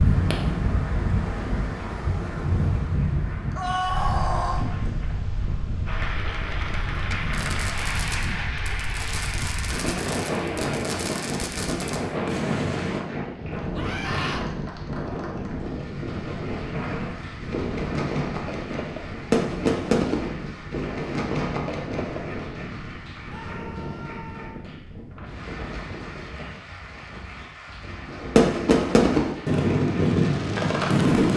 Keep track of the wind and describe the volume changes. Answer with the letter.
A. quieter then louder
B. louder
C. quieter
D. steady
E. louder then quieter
C.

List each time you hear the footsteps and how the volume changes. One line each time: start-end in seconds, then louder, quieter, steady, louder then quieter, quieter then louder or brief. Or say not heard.
not heard.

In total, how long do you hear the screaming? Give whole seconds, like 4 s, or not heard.
3 s.